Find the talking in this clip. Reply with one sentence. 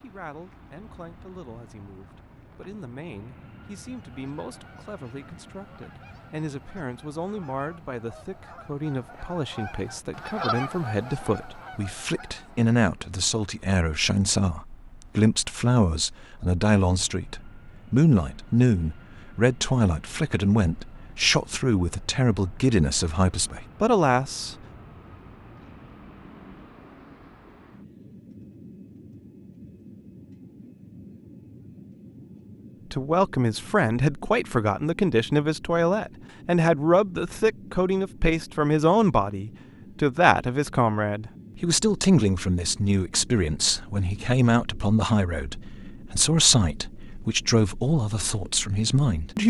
The talking can be heard from 0.0 to 24.6 s and from 32.9 to 49.4 s.